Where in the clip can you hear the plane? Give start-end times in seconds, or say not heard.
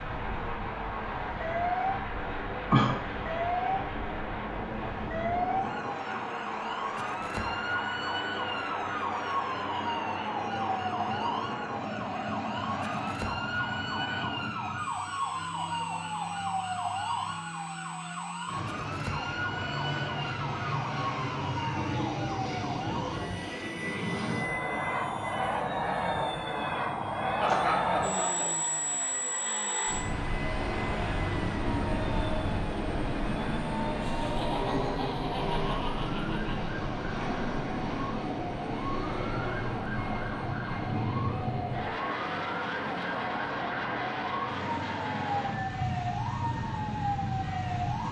0.0-48.0.